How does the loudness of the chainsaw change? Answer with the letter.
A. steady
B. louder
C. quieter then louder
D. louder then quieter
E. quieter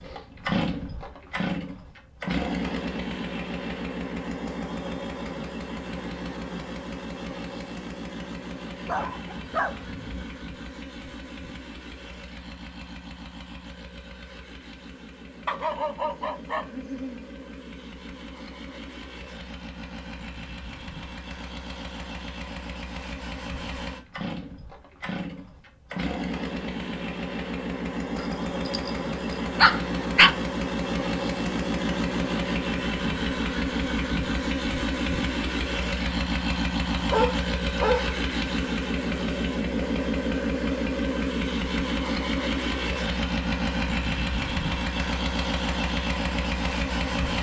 C.